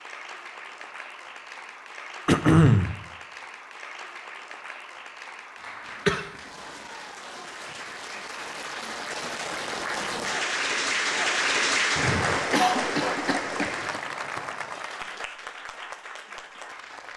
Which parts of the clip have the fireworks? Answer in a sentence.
The fireworks can't be heard in this clip.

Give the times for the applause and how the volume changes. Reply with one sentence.
The applause can be heard from 0.0 to 17.1 s, getting louder then quieter.